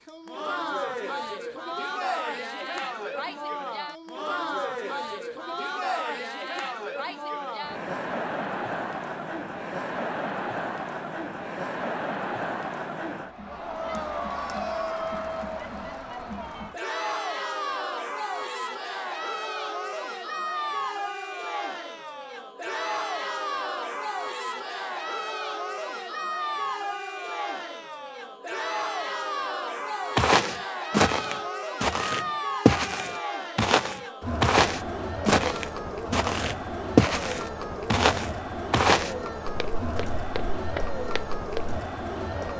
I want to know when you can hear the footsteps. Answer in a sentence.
The footsteps can be heard from 30.1 to 41.8 s.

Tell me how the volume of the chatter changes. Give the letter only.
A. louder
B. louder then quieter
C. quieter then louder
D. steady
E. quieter
D.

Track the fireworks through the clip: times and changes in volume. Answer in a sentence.
The fireworks can't be heard in this clip.